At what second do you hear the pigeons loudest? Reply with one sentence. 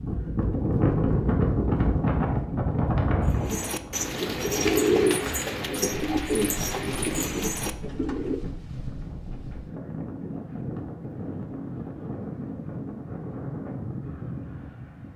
The volume of the pigeons peaks at 5 seconds.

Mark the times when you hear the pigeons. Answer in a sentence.
The pigeons can be heard from 3.2 to 8.4 s.